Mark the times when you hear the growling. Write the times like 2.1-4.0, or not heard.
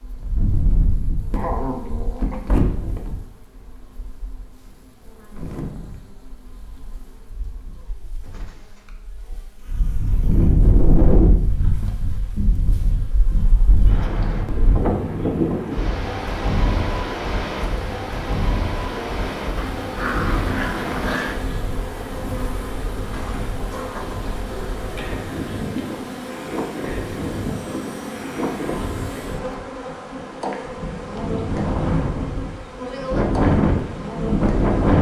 1.4-2.7, 19.6-21.4, 28.7-29.6.